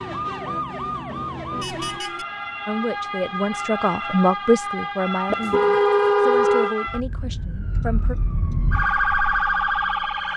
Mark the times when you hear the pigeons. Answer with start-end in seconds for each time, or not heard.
not heard.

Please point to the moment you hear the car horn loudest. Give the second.
6 s.